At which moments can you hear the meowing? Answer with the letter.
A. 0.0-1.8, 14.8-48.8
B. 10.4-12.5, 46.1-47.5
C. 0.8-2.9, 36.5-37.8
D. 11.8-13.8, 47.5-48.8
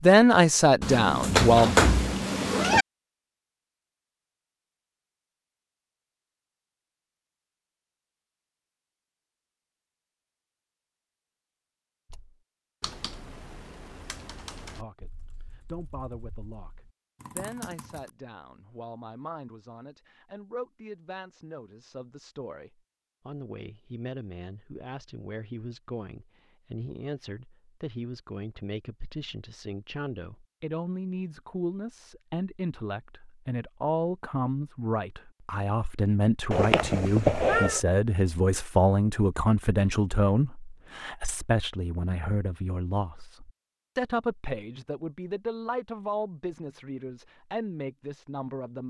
C.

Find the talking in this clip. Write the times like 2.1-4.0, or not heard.
0.0-1.8, 14.8-48.8.